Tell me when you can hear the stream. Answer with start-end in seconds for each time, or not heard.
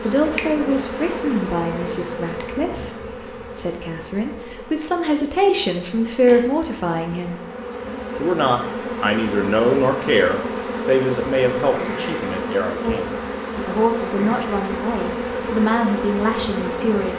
not heard.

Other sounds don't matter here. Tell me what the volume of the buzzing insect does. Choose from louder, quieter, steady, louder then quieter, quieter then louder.
quieter then louder.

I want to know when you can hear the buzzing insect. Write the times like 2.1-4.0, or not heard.
0.0-17.1.